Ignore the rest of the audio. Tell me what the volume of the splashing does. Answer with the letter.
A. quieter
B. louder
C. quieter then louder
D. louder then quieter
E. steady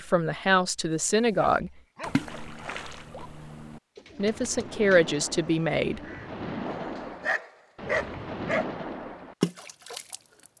B.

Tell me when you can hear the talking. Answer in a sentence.
The talking can be heard from 0.0 to 1.7 s and from 4.2 to 6.0 s.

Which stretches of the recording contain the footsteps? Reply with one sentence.
The footsteps can't be heard in this clip.